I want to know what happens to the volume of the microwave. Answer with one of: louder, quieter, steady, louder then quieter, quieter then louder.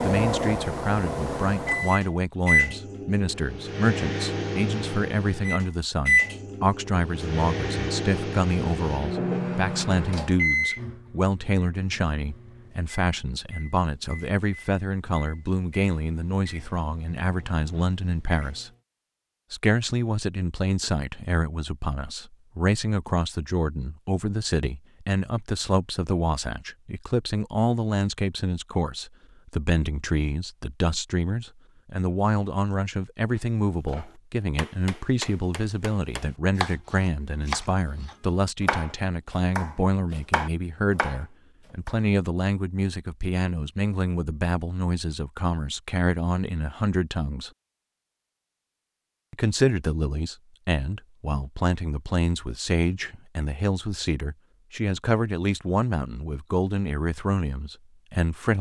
quieter.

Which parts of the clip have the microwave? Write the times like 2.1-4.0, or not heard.
0.0-18.8.